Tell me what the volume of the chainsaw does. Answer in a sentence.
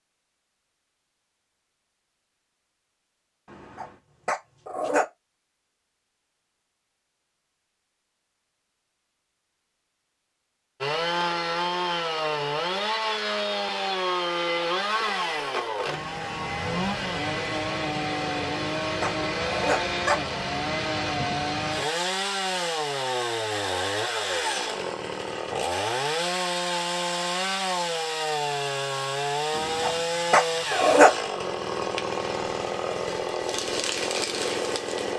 The loudness of the chainsaw stays about the same.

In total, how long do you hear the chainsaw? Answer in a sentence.
You can hear the chainsaw for 24 seconds altogether.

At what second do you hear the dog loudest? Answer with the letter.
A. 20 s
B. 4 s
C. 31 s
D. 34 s
C.